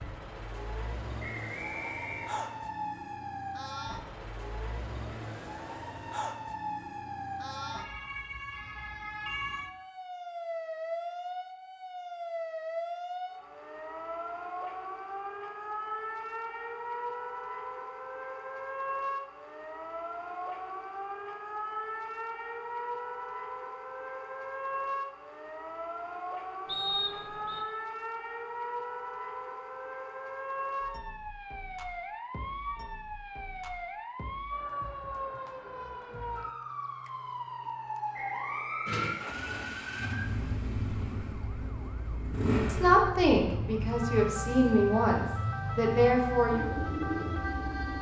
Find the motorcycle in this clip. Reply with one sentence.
You can hear the motorcycle from 38.9 to 47.9 s.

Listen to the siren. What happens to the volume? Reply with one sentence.
The volume of the siren stays about the same.